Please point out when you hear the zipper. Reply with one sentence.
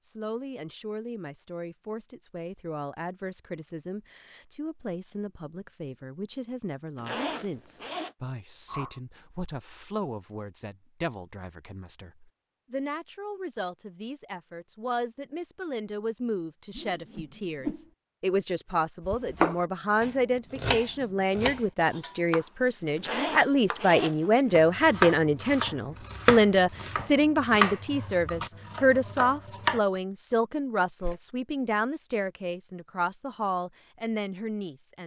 The zipper can be heard from 7.0 to 8.2 s and from 22.9 to 24.6 s.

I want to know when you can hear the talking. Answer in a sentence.
You can hear the talking from 0.0 to 35.0 s.